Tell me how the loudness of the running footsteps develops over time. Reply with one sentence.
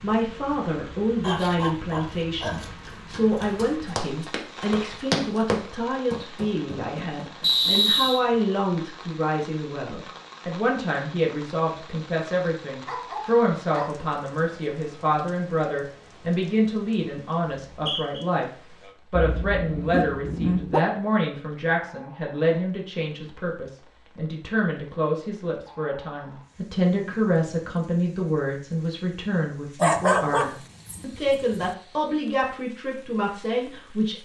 The loudness of the running footsteps goes up, then down.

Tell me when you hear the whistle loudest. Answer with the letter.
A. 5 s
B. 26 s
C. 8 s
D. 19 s
C.